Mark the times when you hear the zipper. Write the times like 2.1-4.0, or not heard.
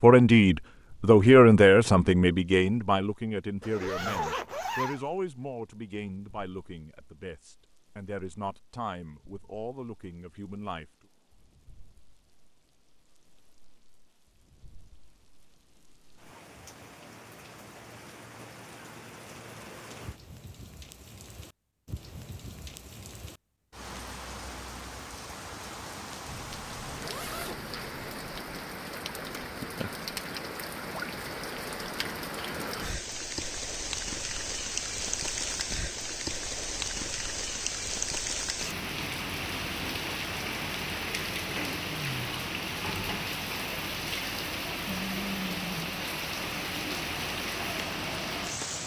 3.6-5.0, 26.2-28.2.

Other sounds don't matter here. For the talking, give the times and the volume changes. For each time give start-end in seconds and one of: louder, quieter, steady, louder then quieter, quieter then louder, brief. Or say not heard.
0.0-10.8 quieter.